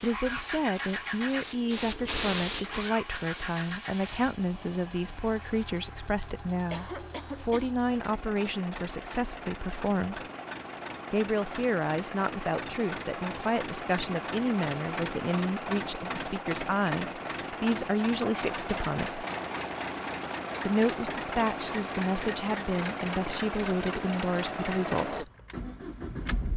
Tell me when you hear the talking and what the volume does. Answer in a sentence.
The talking can be heard from 0.0 to 10.2 s, at a steady volume; from 11.1 to 19.2 s, at a steady volume; and from 20.6 to 25.3 s, at a steady volume.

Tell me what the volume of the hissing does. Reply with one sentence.
The loudness of the hissing goes up, then down.